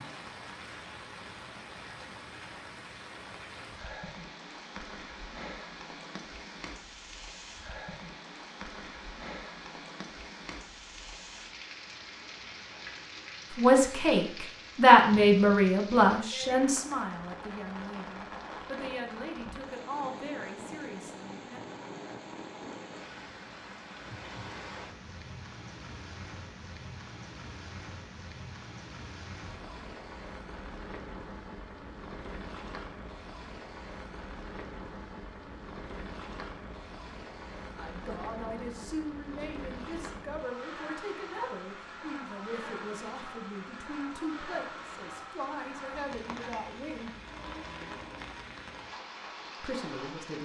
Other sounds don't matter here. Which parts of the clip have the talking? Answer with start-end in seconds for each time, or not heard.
13.6-21.6, 37.8-47.1, 49.6-50.4.